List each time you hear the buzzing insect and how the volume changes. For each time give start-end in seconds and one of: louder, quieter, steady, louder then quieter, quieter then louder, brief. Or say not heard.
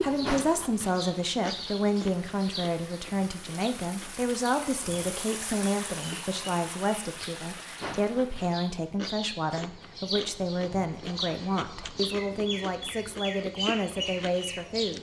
not heard.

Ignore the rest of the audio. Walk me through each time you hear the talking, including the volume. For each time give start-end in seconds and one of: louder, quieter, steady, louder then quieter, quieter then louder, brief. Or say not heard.
0.0-14.9 steady.